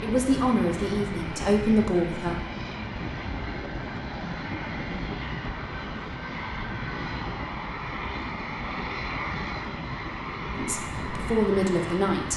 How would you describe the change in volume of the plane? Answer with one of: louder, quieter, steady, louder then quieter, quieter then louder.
steady.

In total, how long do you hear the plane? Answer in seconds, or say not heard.
12 s.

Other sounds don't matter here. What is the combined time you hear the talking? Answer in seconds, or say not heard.
4 s.